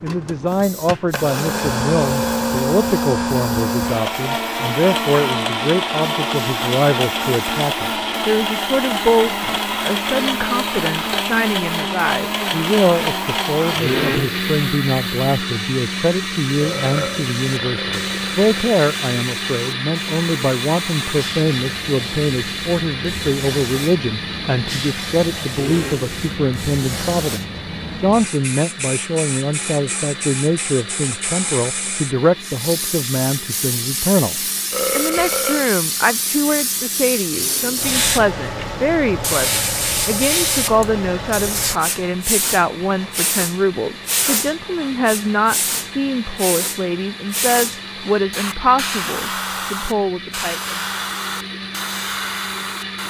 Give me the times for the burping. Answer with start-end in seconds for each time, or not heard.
16.6-18.8, 34.7-35.7.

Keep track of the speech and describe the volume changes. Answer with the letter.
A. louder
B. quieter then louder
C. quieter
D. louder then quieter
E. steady
E.